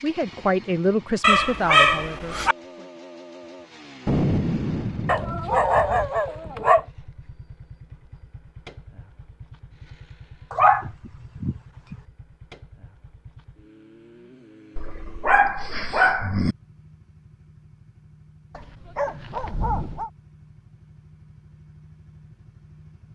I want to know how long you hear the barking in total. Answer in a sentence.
The barking can be heard for 8 seconds in total.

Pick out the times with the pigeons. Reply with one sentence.
You can't hear the pigeons here.